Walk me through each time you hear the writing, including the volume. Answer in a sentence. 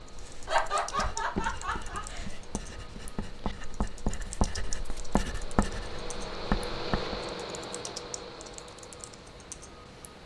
You can hear the writing from 0.0 to 7.3 s, getting quieter then louder.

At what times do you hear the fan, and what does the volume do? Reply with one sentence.
The fan can be heard from 0.0 to 10.2 s, getting louder then quieter.